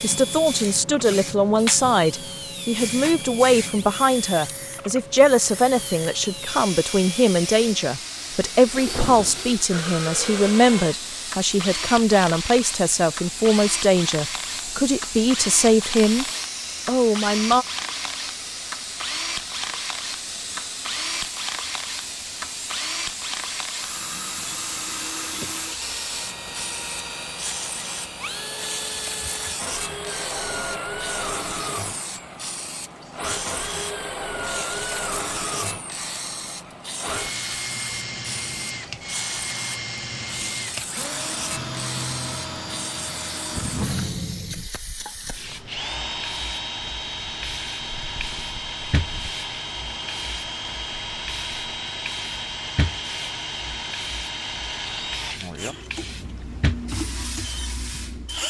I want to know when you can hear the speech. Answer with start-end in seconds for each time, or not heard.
0.0-16.2, 16.9-17.6.